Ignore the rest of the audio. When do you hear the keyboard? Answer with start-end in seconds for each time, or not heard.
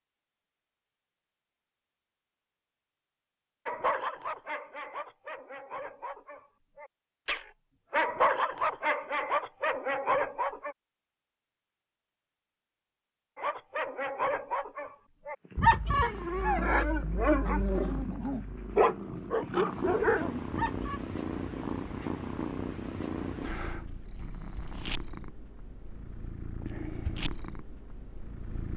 not heard.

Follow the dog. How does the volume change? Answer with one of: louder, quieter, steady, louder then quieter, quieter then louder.
louder.